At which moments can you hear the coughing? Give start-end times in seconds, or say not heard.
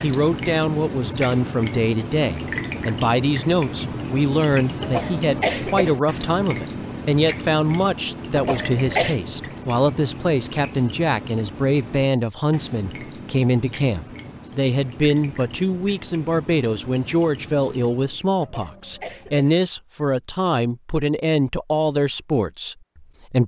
4.8-6.0, 8.3-9.2, 18.4-19.5.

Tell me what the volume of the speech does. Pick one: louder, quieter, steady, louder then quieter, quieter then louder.
steady.